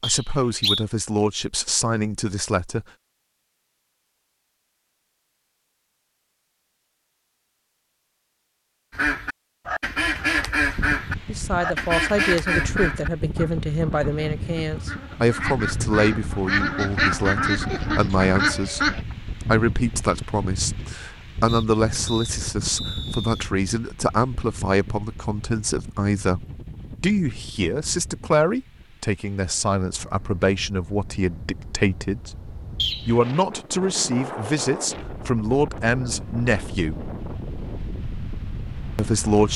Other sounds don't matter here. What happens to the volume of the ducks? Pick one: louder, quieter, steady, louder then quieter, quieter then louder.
quieter then louder.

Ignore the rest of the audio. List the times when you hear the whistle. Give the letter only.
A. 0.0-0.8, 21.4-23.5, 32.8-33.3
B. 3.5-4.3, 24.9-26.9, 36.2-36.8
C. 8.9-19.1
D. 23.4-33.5
A.